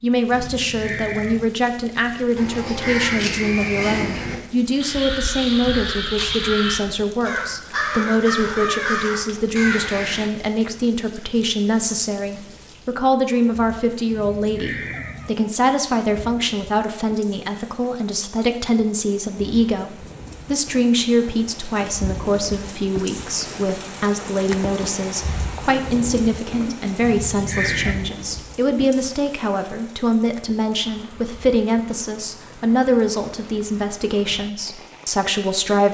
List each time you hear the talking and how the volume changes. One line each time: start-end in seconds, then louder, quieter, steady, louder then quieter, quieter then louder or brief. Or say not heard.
0.0-35.8 steady.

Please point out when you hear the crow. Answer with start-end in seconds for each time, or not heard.
2.4-10.3.